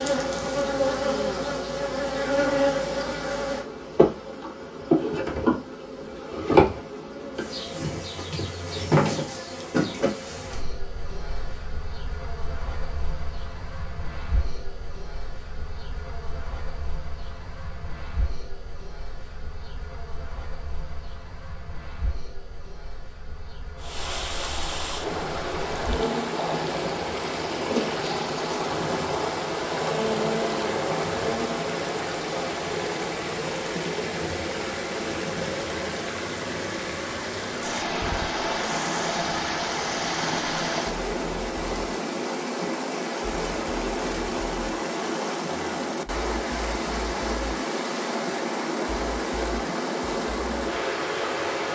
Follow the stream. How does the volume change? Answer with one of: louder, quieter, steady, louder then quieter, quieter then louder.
steady.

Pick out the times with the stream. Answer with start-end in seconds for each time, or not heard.
23.8-51.7.